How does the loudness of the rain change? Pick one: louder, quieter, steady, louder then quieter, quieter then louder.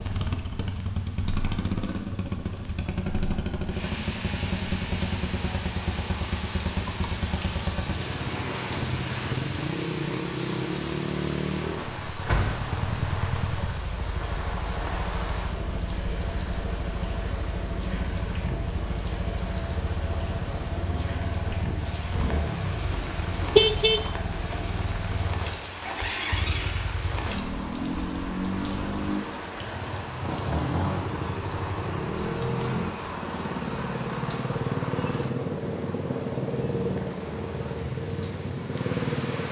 steady.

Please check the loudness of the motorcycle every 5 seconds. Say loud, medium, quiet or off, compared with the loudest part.
loud, loud, loud, medium, medium, loud, loud, loud.